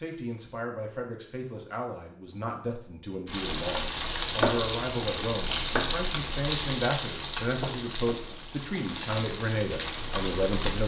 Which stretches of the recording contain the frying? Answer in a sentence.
The frying can be heard from 3.2 to 10.8 s.